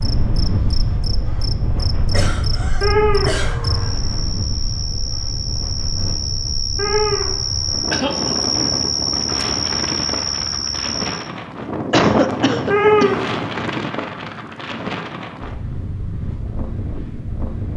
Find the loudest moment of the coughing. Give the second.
12 s.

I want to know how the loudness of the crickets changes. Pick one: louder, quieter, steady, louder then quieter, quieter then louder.
louder.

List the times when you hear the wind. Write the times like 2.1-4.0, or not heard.
0.0-17.7.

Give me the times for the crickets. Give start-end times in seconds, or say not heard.
0.0-11.3.